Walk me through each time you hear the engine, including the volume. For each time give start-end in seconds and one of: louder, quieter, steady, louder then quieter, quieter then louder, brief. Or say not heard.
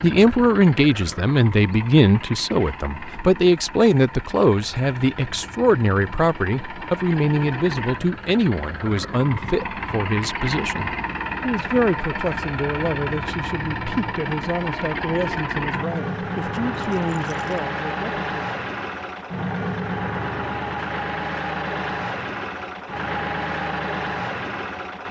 0.0-25.0 louder.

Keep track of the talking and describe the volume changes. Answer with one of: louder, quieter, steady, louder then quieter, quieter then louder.
quieter.